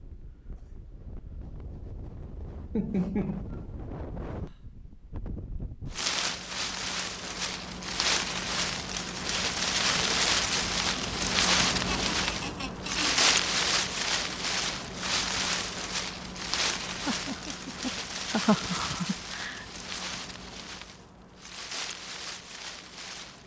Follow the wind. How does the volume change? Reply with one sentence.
The volume of the wind goes up, then down.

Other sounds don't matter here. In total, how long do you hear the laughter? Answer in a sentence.
The laughter can be heard for 5 seconds in total.